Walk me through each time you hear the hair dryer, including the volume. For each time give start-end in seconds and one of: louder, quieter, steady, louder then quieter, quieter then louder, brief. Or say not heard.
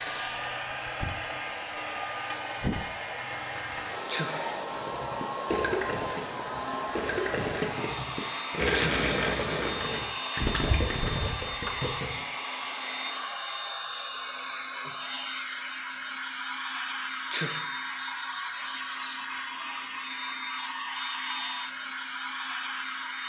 0.0-23.2 steady.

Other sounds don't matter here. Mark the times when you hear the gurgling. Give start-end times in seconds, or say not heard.
4.8-12.1.